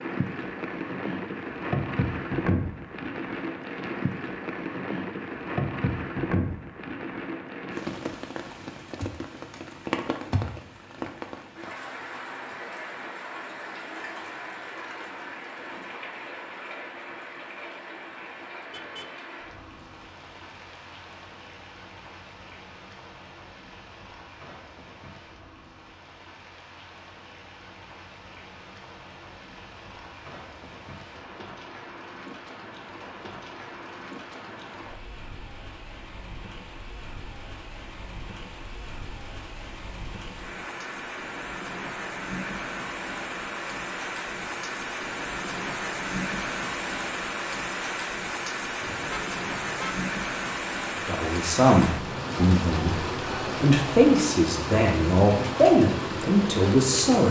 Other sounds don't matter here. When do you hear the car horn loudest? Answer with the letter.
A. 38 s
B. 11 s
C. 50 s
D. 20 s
C.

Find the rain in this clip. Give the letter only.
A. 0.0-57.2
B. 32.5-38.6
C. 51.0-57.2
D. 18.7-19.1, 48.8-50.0
A.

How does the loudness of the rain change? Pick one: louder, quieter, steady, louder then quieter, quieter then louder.
quieter then louder.